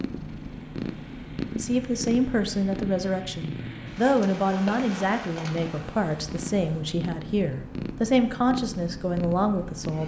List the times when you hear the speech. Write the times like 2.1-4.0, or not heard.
1.5-10.0.